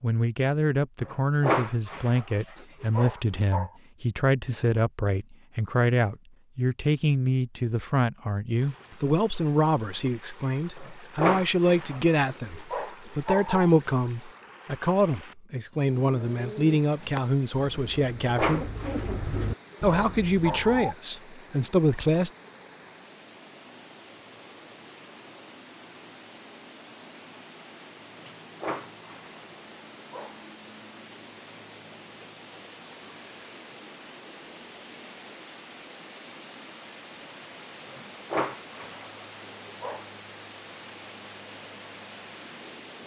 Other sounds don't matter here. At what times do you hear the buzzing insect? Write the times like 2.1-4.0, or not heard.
not heard.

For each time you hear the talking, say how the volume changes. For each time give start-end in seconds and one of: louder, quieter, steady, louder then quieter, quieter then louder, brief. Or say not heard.
0.0-18.7 steady
19.8-22.3 brief.